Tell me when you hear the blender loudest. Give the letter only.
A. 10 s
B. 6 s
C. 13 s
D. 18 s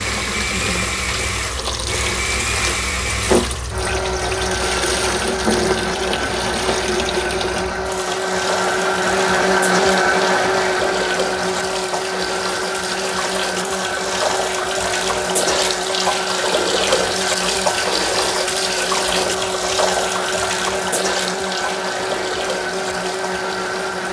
A.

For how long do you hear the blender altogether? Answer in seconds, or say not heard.
24 s.